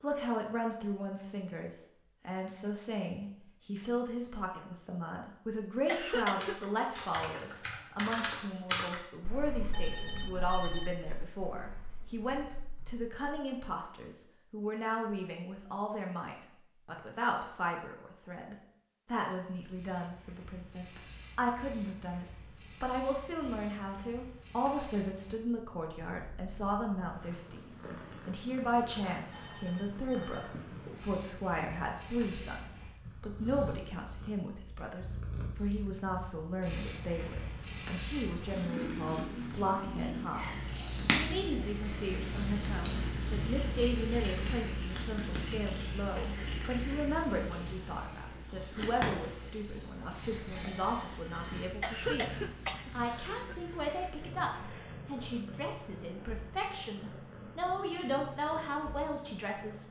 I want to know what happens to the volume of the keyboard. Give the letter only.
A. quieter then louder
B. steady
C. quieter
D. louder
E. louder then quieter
E.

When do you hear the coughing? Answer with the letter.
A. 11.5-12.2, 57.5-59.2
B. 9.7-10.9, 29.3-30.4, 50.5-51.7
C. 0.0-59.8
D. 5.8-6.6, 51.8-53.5
D.